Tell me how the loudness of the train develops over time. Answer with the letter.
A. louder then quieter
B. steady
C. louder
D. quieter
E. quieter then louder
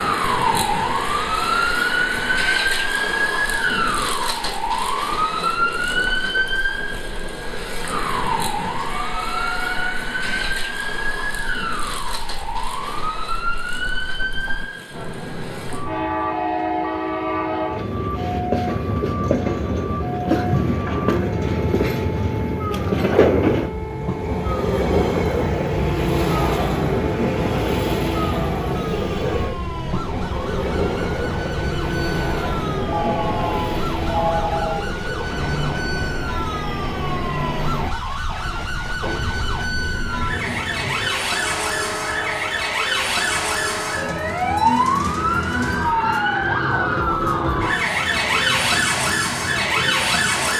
A.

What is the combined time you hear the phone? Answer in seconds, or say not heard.
4 s.